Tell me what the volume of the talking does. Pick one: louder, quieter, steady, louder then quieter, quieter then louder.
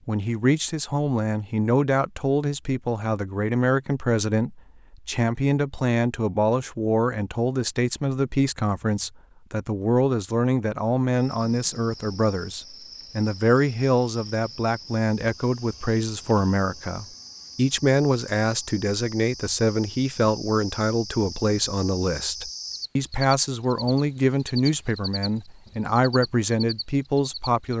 steady.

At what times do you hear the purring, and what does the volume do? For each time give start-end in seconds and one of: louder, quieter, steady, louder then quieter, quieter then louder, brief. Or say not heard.
not heard.